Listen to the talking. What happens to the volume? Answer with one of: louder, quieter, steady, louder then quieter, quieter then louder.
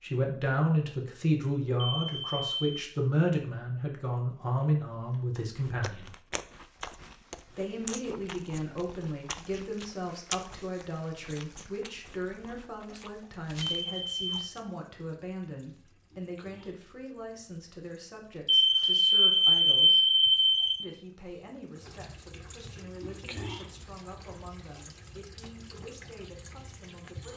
quieter.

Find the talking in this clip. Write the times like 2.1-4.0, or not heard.
0.0-6.0, 7.5-20.1, 20.8-27.3.